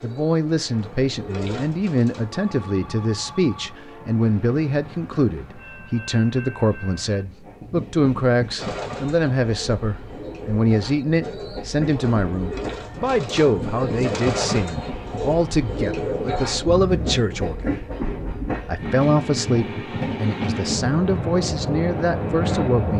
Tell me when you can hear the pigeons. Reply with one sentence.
The pigeons can be heard from 0.0 to 2.5 s and from 8.6 to 17.2 s.